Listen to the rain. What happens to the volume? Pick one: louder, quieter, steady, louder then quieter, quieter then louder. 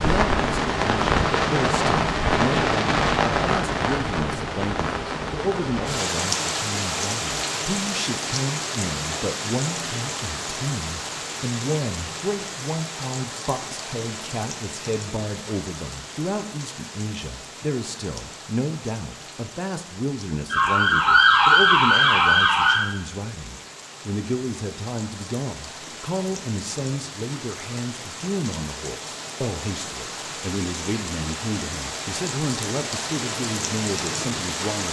quieter then louder.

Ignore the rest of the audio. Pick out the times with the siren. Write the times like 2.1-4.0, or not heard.
20.5-22.8.